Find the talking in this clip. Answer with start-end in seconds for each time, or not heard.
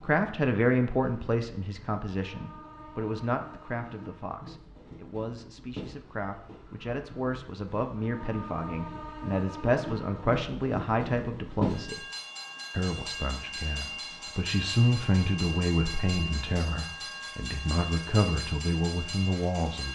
0.0-12.0, 12.7-19.9.